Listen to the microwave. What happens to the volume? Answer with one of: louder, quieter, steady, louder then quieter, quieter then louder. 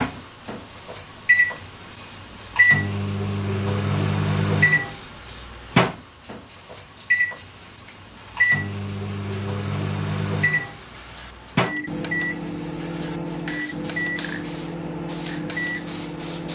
quieter.